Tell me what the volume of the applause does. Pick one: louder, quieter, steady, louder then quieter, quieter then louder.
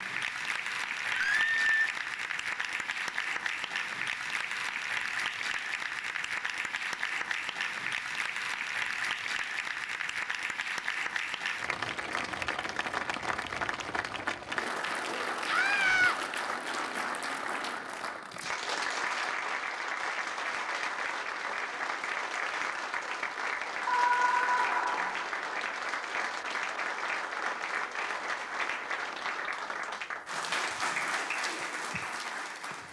steady.